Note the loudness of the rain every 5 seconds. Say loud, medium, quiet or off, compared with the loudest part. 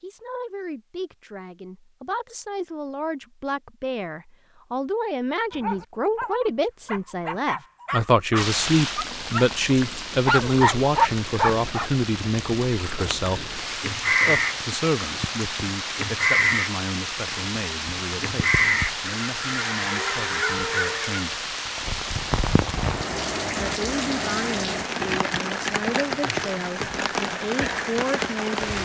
off, loud, medium, loud, loud, loud.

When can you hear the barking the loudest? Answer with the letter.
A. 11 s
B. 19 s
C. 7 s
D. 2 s
A.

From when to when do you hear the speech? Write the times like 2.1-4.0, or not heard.
0.0-21.5, 23.6-28.8.